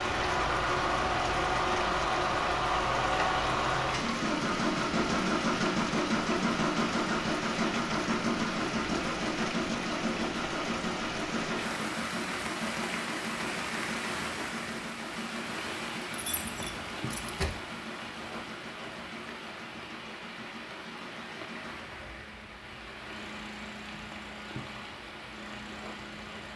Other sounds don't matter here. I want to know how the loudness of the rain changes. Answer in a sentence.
The loudness of the rain goes down.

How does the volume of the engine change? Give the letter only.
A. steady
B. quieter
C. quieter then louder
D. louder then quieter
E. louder
B.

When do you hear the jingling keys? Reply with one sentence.
You can hear the jingling keys from 16.1 to 17.6 s.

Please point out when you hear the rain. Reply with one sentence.
You can hear the rain from 0.0 to 26.5 s.